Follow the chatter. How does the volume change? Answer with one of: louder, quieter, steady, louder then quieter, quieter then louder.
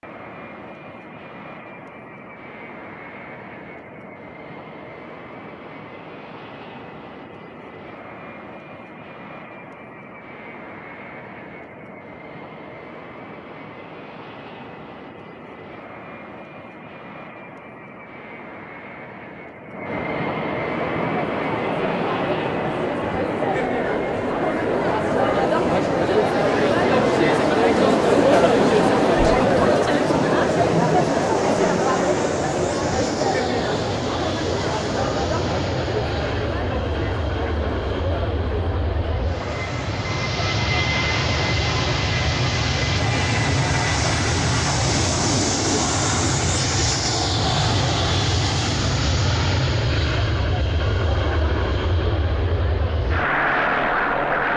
quieter.